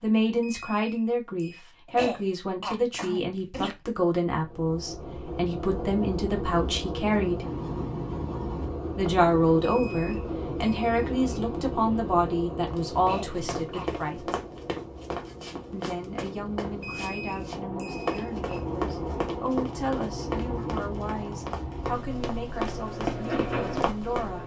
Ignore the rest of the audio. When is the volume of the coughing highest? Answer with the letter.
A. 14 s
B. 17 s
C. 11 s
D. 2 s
D.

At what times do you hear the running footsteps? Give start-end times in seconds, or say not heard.
12.7-24.2.